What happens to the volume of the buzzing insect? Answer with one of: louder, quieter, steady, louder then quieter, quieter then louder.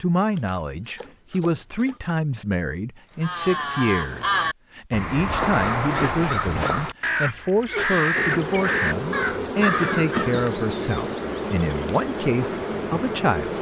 steady.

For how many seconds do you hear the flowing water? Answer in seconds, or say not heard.
not heard.